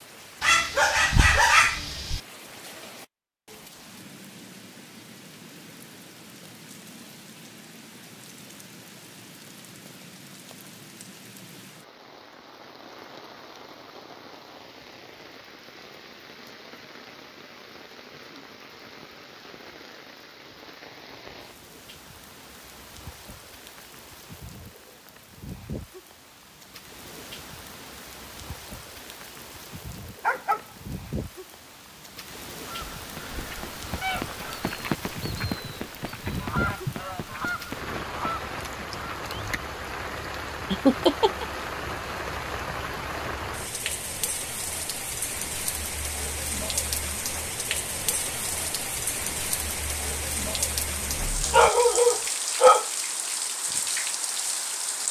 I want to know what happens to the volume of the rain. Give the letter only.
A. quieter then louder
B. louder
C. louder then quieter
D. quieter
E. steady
B.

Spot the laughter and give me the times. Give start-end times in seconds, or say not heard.
40.7-41.5.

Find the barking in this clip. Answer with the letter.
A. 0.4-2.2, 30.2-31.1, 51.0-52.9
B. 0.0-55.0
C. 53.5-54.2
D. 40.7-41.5
A.